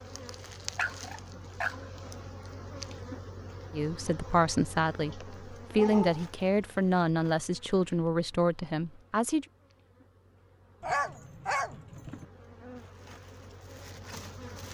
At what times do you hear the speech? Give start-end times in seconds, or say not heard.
3.7-9.4.